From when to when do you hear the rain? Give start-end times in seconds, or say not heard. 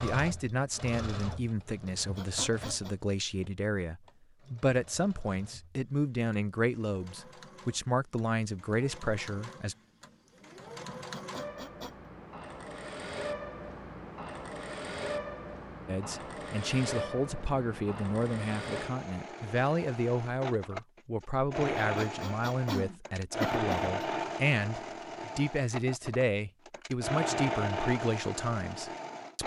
not heard.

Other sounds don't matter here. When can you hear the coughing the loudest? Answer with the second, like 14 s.
24 s.